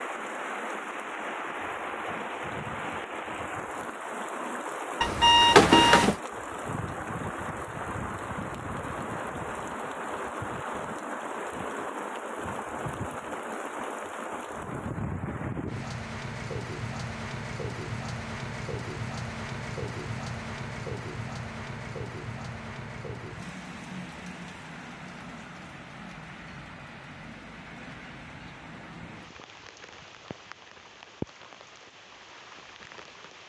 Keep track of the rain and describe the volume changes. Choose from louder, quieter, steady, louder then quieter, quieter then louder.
quieter.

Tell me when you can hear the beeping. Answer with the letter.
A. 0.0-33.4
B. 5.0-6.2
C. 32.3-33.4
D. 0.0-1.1
B.